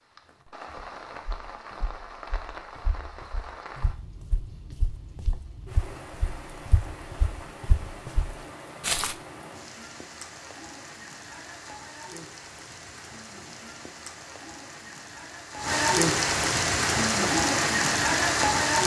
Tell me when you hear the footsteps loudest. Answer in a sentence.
The loudest moment of the footsteps is at 9 seconds.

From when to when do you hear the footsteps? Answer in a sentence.
You can hear the footsteps from 0.2 to 9.2 s.